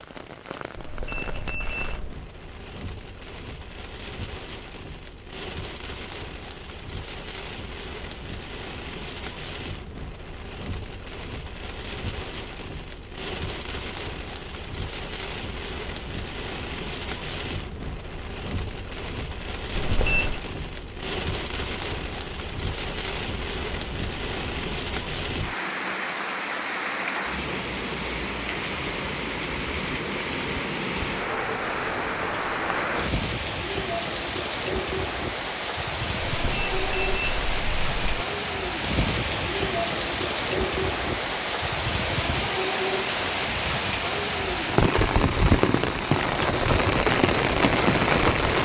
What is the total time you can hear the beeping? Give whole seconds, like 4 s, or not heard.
4 s.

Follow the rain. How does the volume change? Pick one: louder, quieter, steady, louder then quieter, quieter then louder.
louder.